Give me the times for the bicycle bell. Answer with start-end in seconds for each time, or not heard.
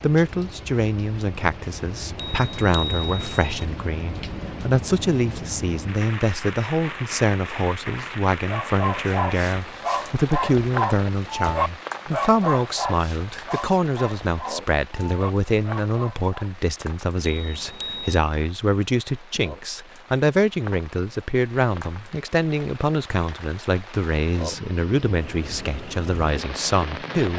2.1-3.6, 17.2-18.2.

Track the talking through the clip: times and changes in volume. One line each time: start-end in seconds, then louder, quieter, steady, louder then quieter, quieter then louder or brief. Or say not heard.
0.0-27.3 steady.